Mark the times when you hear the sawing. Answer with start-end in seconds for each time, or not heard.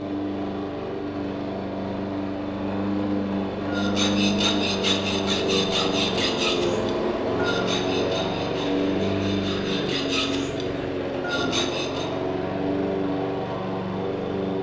3.6-12.1.